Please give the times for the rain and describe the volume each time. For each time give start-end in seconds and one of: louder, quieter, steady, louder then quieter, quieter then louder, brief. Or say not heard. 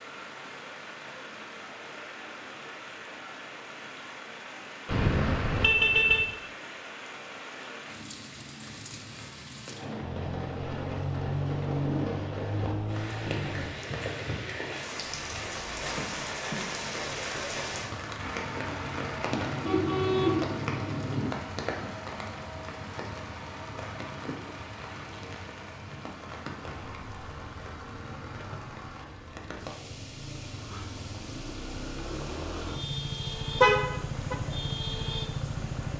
0.0-35.9 louder then quieter.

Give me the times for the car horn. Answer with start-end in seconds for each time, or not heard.
4.8-6.3, 19.3-21.3, 33.6-34.4.